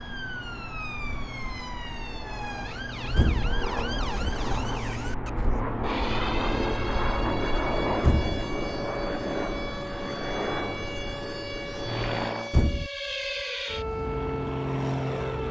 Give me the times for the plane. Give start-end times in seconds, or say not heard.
0.0-12.6, 13.9-15.4.